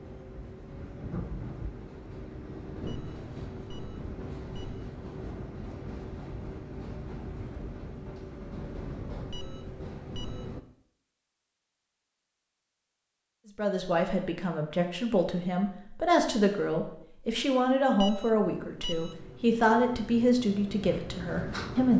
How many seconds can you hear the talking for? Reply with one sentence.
You can hear the talking for 8 seconds altogether.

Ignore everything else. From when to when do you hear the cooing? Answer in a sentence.
The cooing can't be heard in this clip.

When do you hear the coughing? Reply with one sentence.
You can't hear the coughing here.